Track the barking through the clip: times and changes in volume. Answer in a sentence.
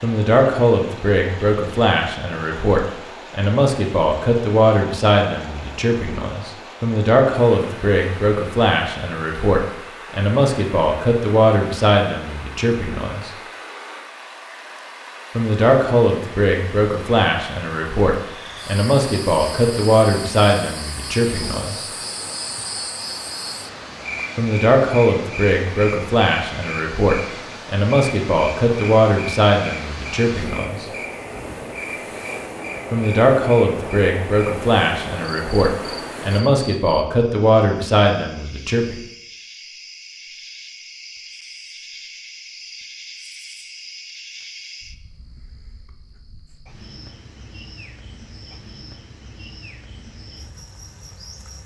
You can't hear the barking here.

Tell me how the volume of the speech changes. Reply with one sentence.
The loudness of the speech stays about the same.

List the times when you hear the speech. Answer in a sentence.
The speech can be heard from 0.0 to 13.3 s, from 15.3 to 21.9 s, from 24.4 to 30.9 s and from 32.9 to 39.0 s.